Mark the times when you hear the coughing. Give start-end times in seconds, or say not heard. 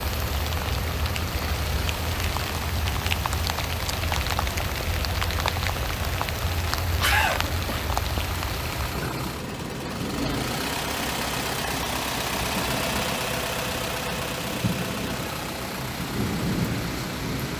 7.0-8.0.